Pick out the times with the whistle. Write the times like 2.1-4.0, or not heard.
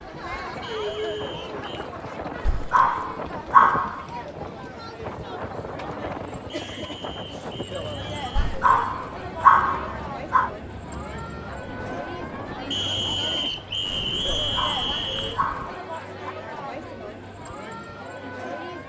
0.6-1.9, 6.5-8.6, 12.7-15.4.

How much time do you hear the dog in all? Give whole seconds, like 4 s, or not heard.
6 s.